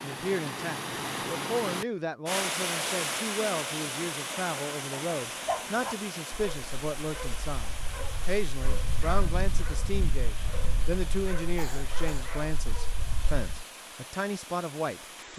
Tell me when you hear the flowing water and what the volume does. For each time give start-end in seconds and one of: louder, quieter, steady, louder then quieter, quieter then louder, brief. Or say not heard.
0.0-15.3 quieter.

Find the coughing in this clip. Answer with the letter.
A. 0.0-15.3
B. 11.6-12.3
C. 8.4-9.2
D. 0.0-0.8
B.